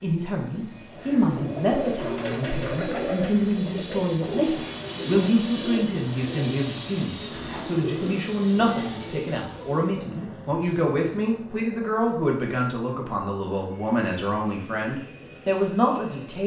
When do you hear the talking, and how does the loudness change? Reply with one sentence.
The talking can be heard from 0.0 to 16.4 s, at a steady volume.